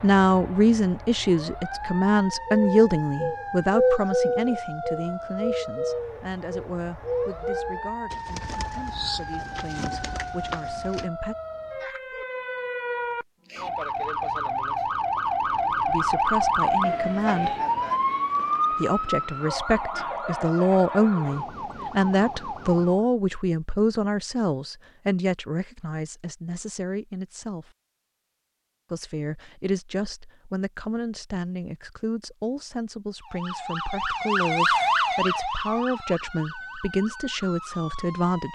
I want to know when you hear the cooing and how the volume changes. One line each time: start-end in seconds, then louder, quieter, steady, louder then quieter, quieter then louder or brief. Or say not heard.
2.3-11.1 quieter.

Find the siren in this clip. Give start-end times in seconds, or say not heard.
0.0-23.1, 33.2-38.4.